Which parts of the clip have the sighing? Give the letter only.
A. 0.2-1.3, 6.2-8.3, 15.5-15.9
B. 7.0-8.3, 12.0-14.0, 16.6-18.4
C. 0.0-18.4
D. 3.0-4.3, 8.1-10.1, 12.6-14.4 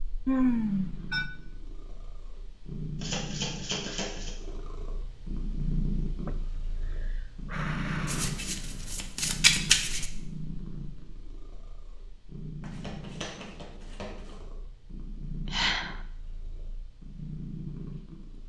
A.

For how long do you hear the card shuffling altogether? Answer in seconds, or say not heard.
5 s.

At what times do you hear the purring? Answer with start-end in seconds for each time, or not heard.
0.0-18.4.